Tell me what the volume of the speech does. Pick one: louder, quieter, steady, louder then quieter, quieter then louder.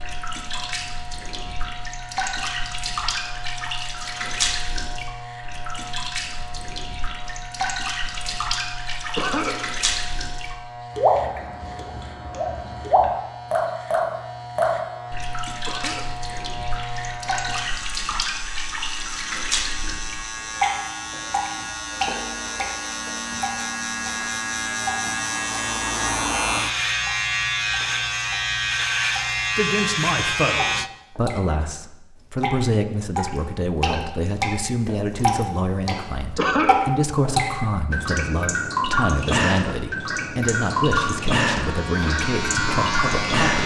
steady.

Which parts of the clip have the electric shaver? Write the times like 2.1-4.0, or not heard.
0.0-30.9, 40.4-43.6.